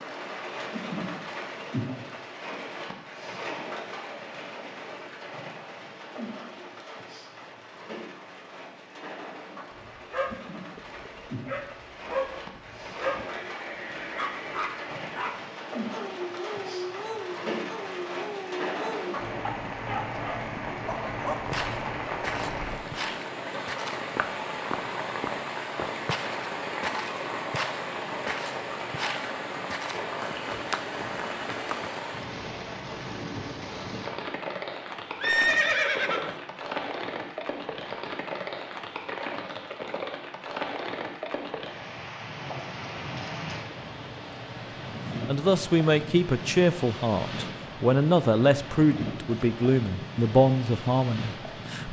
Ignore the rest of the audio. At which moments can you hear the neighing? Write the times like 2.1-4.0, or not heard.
13.3-15.3, 35.2-36.4.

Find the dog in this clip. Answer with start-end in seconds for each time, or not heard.
9.8-13.3, 14.2-21.4.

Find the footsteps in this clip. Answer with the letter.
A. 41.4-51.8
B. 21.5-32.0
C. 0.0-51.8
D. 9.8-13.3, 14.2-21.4
B.